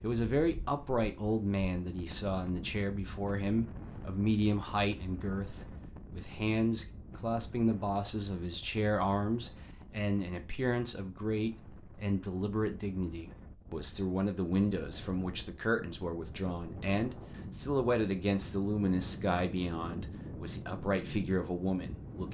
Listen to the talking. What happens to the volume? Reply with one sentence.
The loudness of the talking stays about the same.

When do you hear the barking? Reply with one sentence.
The barking can't be heard in this clip.